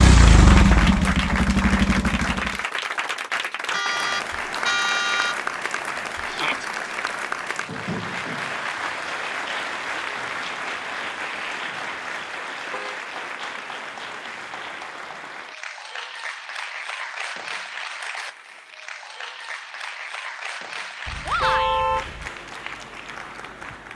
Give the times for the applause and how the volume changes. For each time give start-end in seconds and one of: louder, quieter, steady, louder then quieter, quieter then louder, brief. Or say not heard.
0.0-23.9 quieter.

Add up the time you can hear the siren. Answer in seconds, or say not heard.
not heard.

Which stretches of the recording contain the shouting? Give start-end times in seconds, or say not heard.
6.2-6.7, 21.2-21.9.